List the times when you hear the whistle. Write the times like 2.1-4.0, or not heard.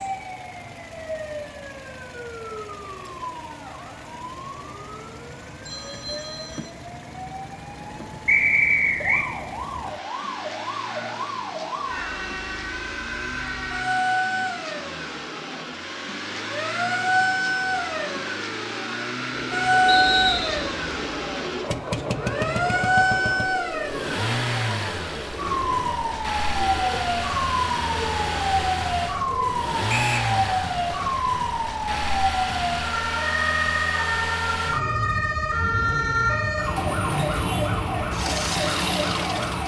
8.2-9.3, 19.9-20.7, 29.9-30.3.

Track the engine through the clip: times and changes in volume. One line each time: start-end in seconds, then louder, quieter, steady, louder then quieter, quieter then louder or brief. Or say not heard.
0.0-39.6 louder.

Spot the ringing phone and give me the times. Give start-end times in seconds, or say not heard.
5.7-6.8.